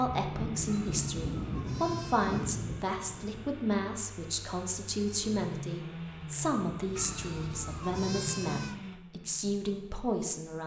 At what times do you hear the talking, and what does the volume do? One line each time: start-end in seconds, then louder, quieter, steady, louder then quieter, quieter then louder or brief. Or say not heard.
0.0-10.6 steady.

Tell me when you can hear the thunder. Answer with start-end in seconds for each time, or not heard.
0.1-3.5.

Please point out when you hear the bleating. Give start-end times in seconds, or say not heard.
0.7-2.5, 7.0-8.8.